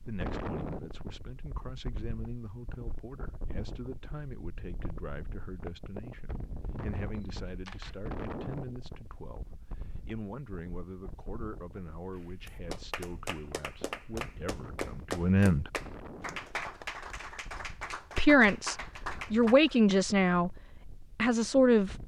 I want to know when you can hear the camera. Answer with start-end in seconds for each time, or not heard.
7.2-8.0.